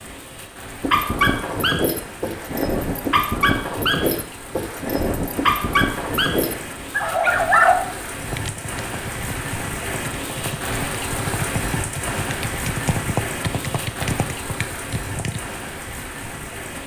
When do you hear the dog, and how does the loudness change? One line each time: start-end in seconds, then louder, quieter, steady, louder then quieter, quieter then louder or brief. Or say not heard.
0.8-7.8 steady.